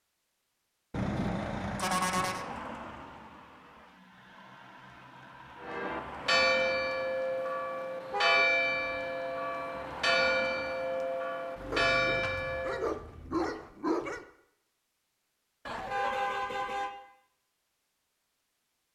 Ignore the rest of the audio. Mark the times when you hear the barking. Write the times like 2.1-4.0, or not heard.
11.7-14.2.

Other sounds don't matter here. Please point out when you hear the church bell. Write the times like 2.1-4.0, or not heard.
5.6-12.8.